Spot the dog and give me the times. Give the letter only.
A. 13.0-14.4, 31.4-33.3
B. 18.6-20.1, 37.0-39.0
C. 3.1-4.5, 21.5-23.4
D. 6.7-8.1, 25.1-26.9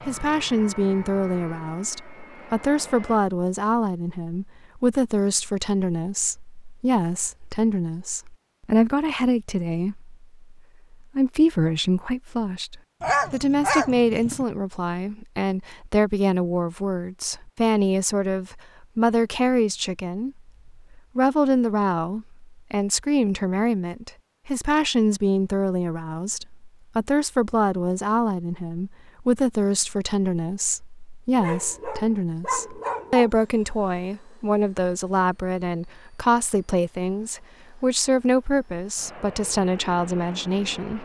A.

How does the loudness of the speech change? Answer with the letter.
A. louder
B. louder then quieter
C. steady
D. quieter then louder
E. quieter
C.